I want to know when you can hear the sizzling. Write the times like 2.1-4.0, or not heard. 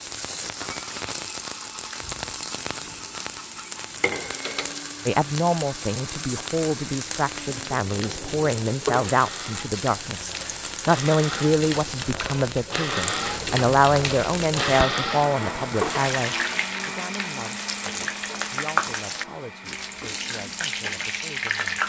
0.0-21.8.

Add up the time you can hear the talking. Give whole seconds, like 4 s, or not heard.
17 s.